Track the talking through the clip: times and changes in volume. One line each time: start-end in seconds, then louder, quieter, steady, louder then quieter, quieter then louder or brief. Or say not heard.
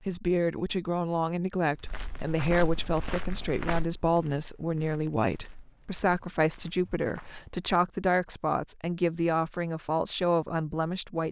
0.0-11.2 steady.